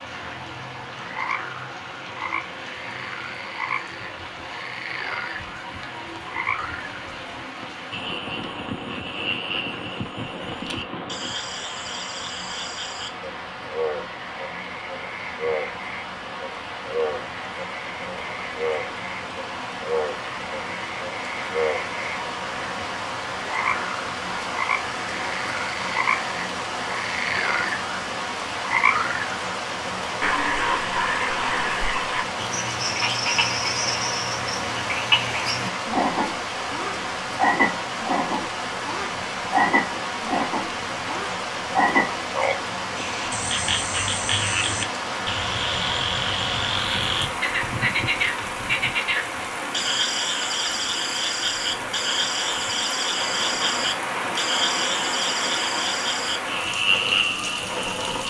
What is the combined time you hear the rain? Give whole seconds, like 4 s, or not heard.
58 s.